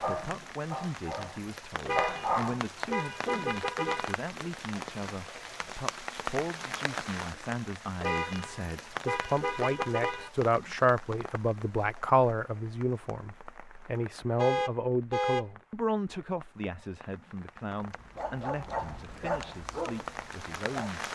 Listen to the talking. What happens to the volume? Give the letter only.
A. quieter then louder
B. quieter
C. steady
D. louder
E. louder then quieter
E.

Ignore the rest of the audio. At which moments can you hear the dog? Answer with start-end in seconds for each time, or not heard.
0.0-2.7, 17.9-21.0.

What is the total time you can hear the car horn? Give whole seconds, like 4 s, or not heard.
6 s.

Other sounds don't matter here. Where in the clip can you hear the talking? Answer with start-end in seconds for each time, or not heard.
0.0-21.0.